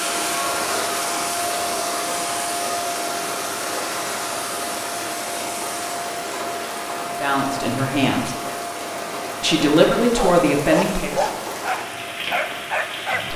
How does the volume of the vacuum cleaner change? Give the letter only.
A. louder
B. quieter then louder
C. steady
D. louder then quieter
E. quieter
E.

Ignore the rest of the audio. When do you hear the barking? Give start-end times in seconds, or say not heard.
10.1-13.2.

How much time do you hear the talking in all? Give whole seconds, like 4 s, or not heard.
3 s.